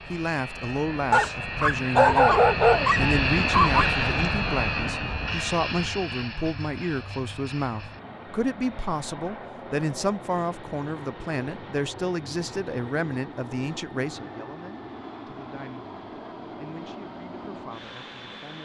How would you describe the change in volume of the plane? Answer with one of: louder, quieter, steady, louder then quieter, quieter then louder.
quieter.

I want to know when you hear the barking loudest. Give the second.
2 s.